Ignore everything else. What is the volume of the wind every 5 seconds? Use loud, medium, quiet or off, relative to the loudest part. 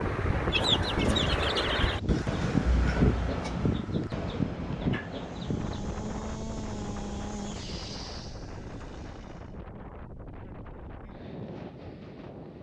loud, medium, quiet.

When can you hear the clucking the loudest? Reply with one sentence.
The loudest moment of the clucking is at 1 second.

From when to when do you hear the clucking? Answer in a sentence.
The clucking can be heard from 0.5 to 5.6 s.